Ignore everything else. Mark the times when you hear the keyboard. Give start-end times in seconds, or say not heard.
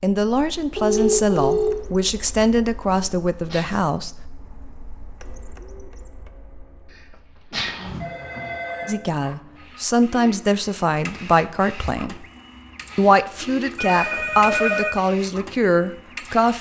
not heard.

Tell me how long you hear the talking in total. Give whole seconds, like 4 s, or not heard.
11 s.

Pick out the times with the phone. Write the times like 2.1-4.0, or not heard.
0.8-1.8, 7.8-9.0, 13.8-14.9.